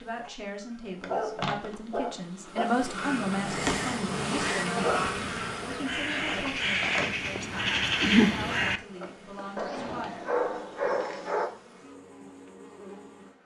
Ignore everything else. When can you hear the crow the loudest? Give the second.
8 s.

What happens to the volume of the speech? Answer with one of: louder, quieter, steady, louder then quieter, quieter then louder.
louder then quieter.